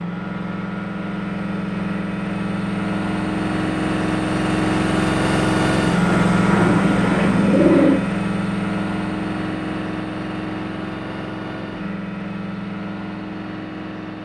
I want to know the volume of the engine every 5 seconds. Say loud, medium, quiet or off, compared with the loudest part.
loud, loud, medium.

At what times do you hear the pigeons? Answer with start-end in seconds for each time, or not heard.
6.0-8.0.